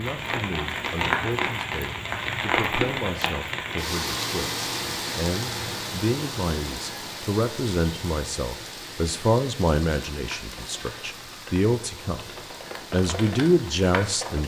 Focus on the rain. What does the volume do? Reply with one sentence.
The loudness of the rain goes down.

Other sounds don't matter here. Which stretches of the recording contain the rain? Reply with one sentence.
The rain can be heard from 0.0 to 14.4 s.